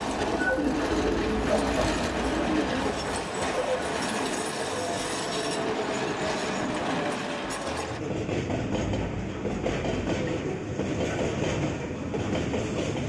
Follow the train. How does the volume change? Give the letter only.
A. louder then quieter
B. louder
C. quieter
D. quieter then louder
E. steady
E.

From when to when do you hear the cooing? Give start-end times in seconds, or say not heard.
0.0-3.2.